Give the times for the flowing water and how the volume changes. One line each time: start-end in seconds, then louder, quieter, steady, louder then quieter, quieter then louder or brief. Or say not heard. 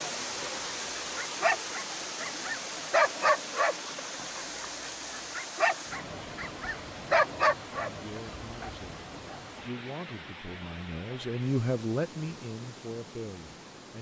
0.0-13.9 quieter.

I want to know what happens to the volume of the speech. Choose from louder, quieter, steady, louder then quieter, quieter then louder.
louder then quieter.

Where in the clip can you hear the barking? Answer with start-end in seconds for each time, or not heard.
0.4-9.4.